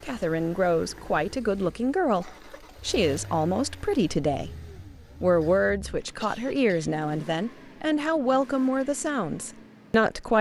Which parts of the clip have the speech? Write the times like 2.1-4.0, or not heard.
0.0-4.5, 5.2-10.3.